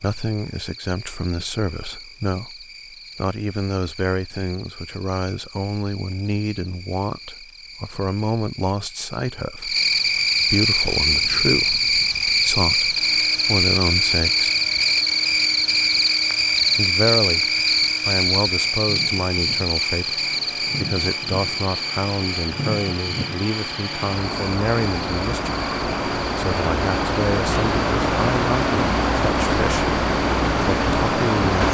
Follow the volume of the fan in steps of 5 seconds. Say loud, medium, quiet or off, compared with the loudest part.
off, off, quiet, quiet, medium, loud, loud.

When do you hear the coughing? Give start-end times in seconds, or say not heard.
not heard.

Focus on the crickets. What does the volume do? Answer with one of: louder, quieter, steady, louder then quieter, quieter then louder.
louder then quieter.